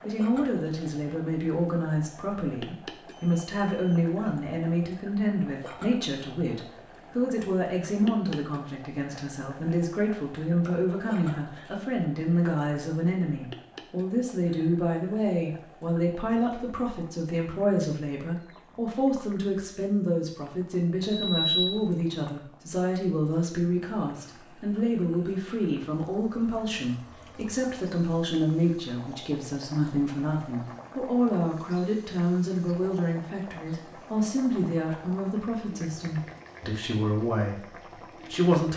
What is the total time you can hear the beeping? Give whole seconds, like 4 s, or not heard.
2 s.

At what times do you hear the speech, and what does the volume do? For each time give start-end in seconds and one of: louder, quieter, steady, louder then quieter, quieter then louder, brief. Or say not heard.
0.1-38.7 steady.